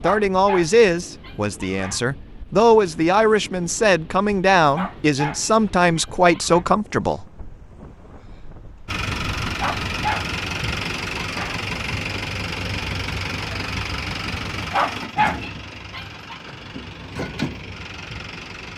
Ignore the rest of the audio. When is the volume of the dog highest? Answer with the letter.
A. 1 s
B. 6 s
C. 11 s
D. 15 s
D.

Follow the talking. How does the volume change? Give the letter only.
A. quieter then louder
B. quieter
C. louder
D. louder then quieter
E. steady
E.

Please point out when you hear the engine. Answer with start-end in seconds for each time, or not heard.
8.8-18.7.